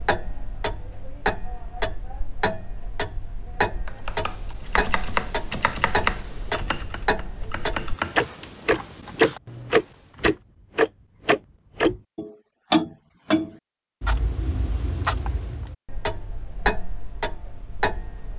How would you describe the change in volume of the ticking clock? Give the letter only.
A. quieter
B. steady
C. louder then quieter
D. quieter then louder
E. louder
C.